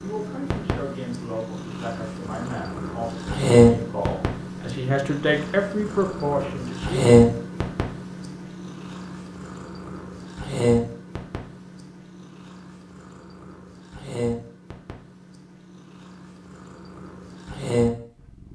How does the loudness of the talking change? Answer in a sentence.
The loudness of the talking goes up.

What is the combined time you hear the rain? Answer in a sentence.
You can't hear the rain here.